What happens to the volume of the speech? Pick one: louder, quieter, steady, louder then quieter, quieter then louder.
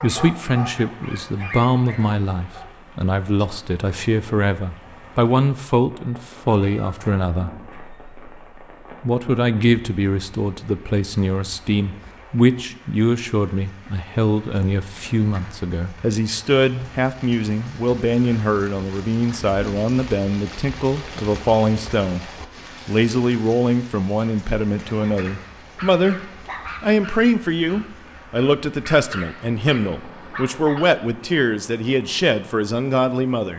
steady.